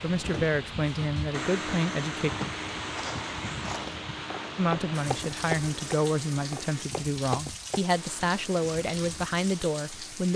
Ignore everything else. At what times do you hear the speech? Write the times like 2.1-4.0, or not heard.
0.0-2.3, 4.5-10.3.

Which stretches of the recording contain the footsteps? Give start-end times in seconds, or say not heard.
2.2-7.8.